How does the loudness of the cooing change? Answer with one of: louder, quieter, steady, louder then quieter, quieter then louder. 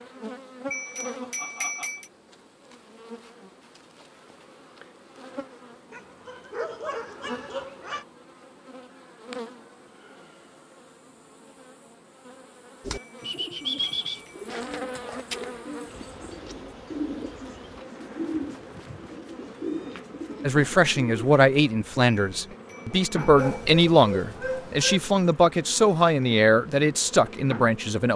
quieter then louder.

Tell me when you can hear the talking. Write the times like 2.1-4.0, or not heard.
20.4-28.1.